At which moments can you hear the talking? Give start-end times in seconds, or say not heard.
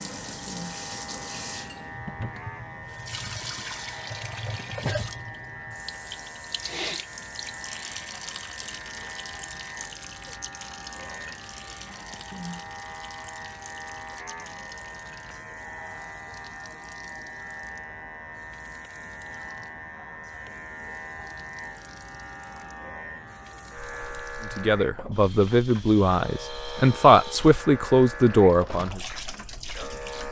24.6-29.0.